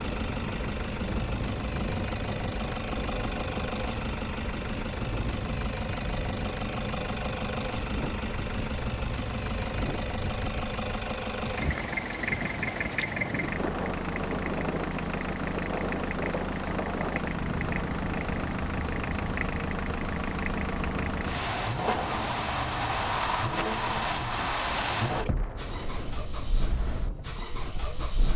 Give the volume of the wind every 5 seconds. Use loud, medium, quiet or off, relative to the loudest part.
loud, loud, loud, loud, medium, medium.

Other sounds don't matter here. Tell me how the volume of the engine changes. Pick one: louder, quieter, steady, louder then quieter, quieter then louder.
steady.